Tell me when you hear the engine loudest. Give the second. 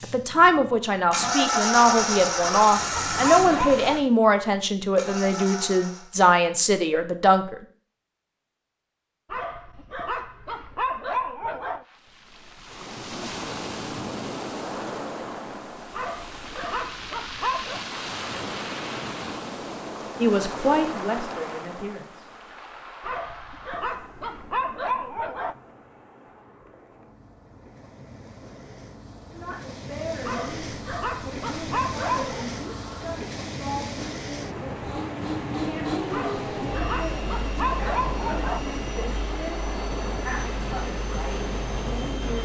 2 s.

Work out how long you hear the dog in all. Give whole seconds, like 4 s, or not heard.
14 s.